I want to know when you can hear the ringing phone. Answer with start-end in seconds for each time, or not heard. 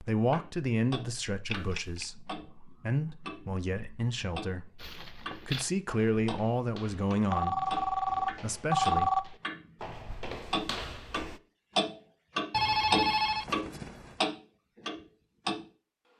1.4-2.0, 7.3-9.2, 12.5-14.2.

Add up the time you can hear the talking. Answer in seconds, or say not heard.
9 s.